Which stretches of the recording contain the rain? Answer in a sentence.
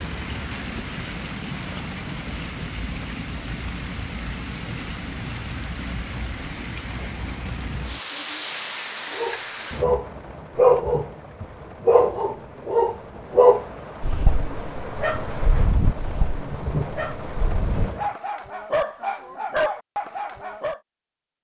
The rain can be heard from 0.0 to 18.1 s.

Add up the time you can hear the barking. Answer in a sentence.
You can hear the barking for 12 seconds altogether.